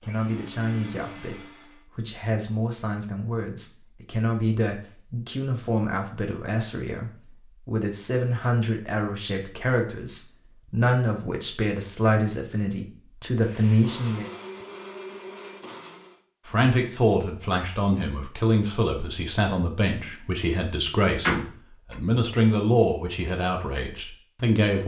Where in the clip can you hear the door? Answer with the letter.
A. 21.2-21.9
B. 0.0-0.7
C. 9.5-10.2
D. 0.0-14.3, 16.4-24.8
A.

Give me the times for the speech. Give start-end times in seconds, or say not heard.
0.0-14.3, 16.4-24.8.